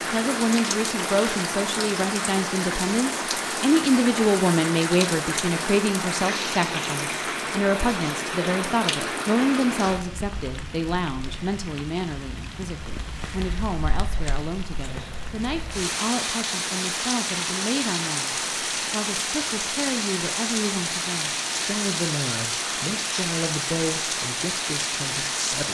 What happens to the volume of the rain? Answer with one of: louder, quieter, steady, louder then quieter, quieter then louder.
quieter then louder.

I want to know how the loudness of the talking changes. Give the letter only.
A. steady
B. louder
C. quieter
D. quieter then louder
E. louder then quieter
C.